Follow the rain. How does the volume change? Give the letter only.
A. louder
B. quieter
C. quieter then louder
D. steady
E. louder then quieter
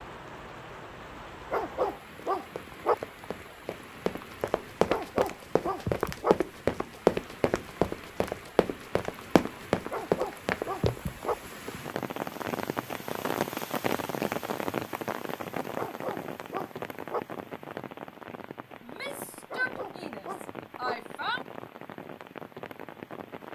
E.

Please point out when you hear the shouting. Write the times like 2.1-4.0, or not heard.
18.8-21.4.